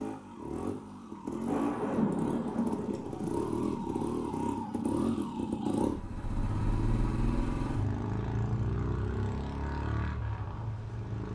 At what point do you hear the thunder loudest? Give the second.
2 s.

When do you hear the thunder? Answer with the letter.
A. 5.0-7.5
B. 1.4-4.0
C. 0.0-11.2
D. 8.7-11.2
B.